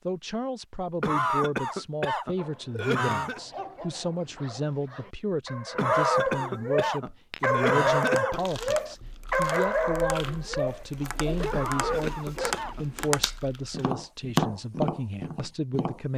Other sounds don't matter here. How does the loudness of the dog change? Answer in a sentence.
The volume of the dog goes up, then down.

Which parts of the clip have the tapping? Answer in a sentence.
The tapping can be heard from 6.8 to 16.1 s.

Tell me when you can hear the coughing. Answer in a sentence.
You can hear the coughing from 1.0 to 3.4 s, from 5.8 to 8.4 s and from 11.5 to 12.8 s.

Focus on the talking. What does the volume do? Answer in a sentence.
The volume of the talking stays about the same.